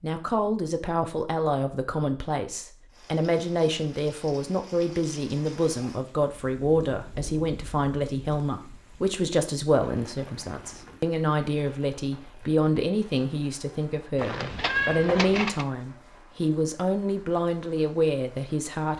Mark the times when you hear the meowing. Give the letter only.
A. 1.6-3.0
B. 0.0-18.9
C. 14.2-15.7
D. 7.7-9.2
C.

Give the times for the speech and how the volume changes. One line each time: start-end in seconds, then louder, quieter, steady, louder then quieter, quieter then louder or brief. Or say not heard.
0.0-18.9 steady.